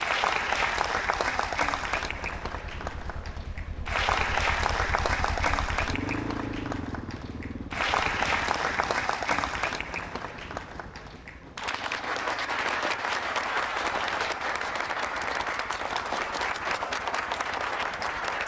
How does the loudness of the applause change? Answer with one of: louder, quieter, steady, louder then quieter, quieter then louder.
steady.